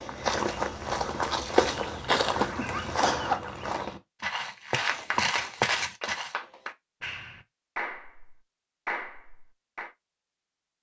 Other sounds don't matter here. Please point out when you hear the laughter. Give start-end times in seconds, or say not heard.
2.3-3.4.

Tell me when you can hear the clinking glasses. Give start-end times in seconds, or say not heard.
not heard.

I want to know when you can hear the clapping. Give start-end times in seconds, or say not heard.
4.7-9.9.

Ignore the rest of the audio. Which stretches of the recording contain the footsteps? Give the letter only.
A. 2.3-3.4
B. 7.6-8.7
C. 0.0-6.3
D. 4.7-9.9
C.